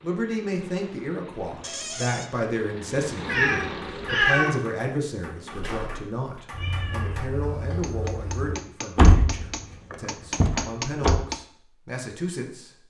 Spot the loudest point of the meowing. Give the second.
4 s.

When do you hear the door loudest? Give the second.
9 s.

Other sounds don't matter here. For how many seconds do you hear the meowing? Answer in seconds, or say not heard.
3 s.